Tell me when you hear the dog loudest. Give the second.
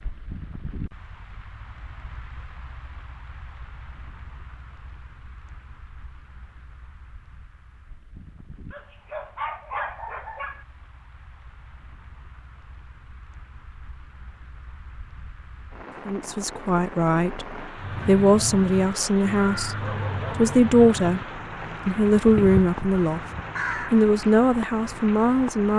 10 s.